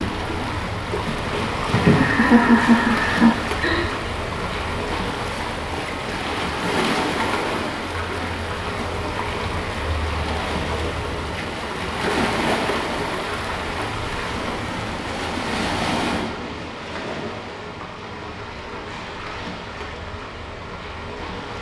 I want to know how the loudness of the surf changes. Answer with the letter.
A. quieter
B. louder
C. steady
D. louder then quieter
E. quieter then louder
A.